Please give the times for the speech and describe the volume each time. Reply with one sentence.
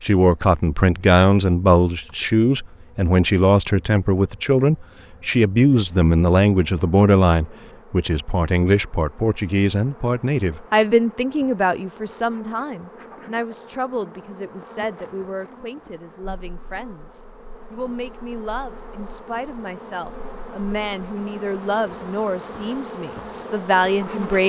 The speech can be heard from 0.0 to 24.4 s, getting quieter then louder.